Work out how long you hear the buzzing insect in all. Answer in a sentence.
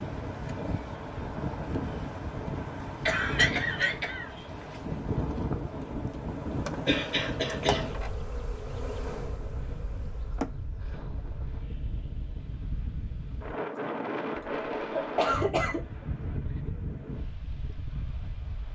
The buzzing insect can be heard for 4 seconds in total.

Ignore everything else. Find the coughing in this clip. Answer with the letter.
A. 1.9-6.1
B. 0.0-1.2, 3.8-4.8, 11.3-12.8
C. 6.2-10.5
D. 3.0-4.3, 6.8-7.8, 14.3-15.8
D.